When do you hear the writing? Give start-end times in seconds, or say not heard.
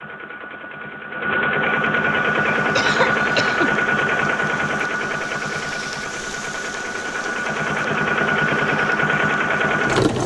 not heard.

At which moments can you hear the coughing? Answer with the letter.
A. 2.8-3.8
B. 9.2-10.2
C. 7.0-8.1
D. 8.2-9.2
A.